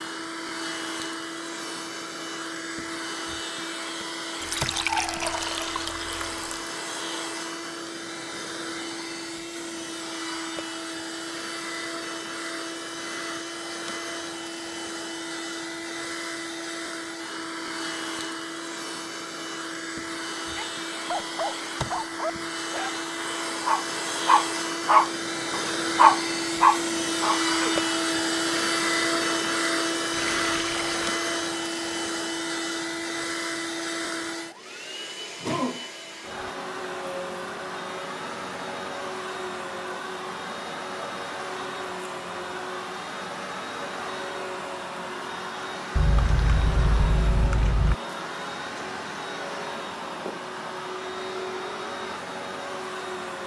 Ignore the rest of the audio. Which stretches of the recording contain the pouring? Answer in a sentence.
The pouring can be heard from 4.4 to 6.6 s, from 30.1 to 31.1 s and from 46.0 to 48.0 s.